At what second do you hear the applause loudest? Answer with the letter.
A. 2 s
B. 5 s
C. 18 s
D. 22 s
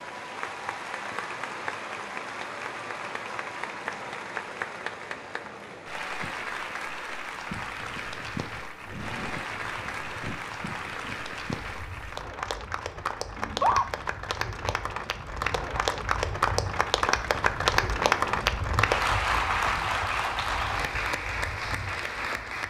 C.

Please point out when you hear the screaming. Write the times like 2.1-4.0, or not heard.
13.3-13.8.